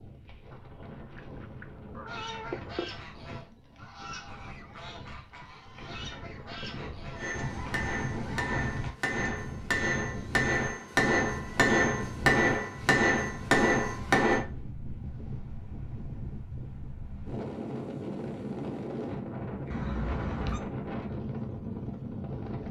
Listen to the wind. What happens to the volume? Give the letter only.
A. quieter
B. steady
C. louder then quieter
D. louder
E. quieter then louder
D.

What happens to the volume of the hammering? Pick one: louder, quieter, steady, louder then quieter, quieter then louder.
louder.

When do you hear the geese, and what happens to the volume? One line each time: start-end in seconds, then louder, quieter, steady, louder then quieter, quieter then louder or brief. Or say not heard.
2.0-9.3 louder.